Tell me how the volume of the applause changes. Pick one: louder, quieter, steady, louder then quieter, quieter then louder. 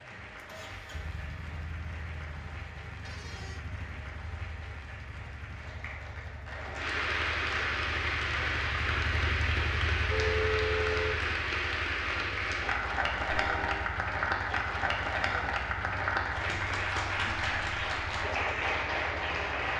louder.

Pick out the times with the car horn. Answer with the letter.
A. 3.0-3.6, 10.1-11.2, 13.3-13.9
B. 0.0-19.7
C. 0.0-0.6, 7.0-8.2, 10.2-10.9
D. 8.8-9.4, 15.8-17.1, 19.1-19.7
A.